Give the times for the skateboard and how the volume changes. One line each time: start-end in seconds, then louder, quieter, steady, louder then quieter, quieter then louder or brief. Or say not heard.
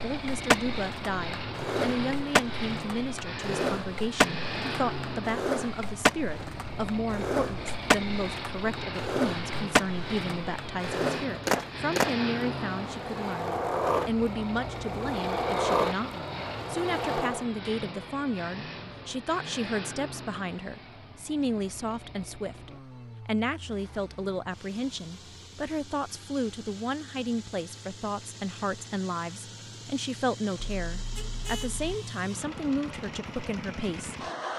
0.0-17.4 steady.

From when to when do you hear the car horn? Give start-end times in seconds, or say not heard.
30.6-31.9.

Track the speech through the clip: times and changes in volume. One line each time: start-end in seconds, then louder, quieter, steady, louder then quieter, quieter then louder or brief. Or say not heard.
0.0-34.1 steady.